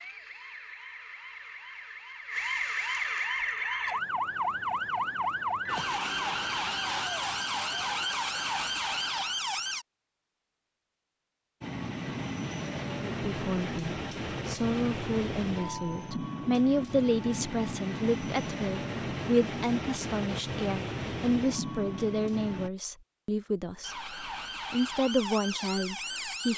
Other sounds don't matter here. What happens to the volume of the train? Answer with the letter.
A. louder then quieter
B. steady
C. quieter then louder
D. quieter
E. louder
B.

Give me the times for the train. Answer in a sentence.
The train can be heard from 11.6 to 22.7 s.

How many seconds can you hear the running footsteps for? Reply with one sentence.
You can't hear the running footsteps here.